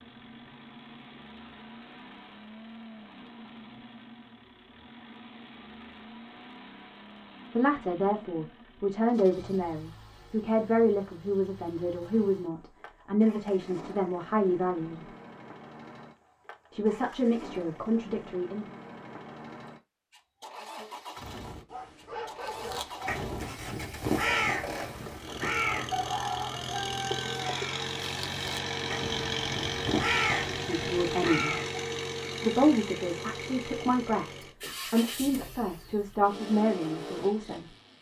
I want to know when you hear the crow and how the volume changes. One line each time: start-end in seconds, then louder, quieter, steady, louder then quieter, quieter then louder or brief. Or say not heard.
22.4-31.9 quieter then louder.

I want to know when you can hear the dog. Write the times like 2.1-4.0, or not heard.
21.7-23.2.